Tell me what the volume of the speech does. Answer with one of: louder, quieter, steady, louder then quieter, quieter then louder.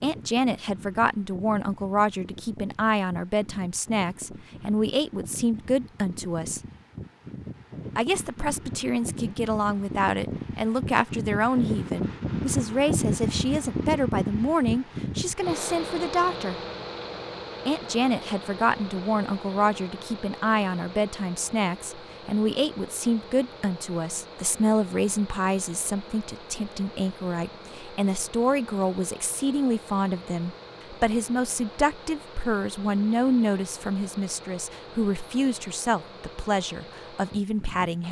steady.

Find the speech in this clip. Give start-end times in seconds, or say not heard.
0.0-6.6, 8.0-16.6, 17.6-38.0.